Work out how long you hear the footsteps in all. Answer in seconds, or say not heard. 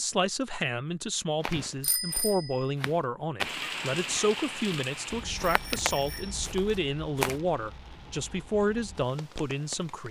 6 s.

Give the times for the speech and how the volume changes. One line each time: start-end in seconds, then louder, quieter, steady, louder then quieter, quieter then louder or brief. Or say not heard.
0.0-10.0 steady.